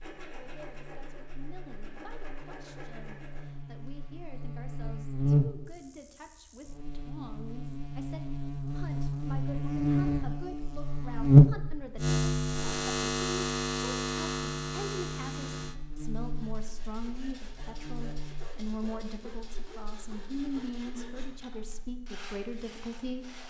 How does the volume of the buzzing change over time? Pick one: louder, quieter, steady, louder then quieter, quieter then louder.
louder then quieter.